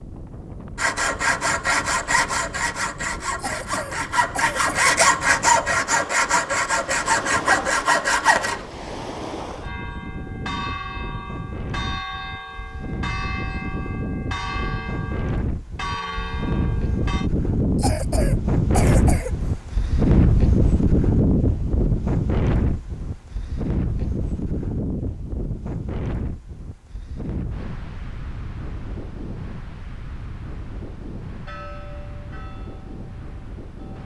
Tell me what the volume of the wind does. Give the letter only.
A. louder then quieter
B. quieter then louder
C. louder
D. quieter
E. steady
A.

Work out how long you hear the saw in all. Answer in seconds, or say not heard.
8 s.